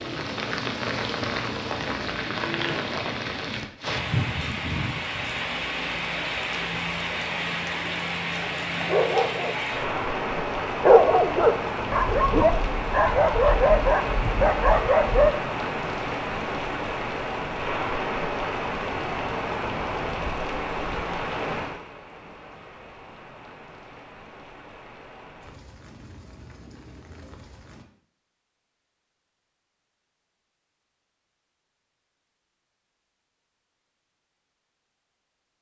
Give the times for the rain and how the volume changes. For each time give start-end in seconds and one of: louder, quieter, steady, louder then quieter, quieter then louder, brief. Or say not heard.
0.0-27.9 quieter.